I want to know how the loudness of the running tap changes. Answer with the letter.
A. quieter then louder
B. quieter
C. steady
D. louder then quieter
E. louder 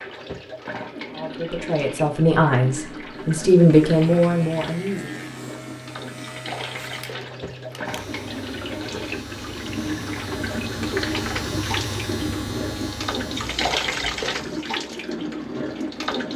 E.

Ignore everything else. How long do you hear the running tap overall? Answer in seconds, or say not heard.
16 s.